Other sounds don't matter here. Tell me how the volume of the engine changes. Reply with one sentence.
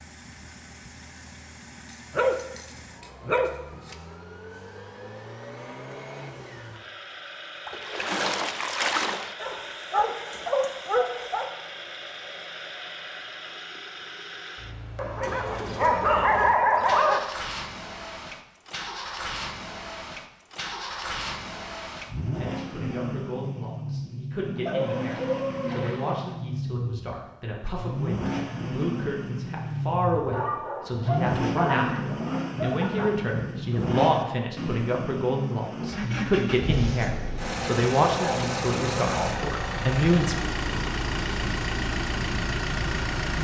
The loudness of the engine goes up.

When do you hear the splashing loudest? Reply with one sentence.
The loudest moment of the splashing is at 9 seconds.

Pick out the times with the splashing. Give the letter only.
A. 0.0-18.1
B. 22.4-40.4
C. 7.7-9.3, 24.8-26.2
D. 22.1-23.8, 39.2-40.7
C.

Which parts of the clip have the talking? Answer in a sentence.
The talking can be heard from 22.4 to 40.4 s.